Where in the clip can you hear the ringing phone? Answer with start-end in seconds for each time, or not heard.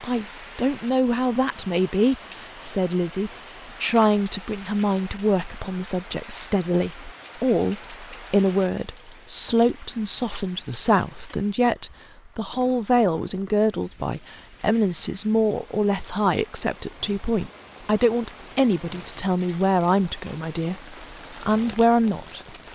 not heard.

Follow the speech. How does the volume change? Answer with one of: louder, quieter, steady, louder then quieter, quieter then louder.
steady.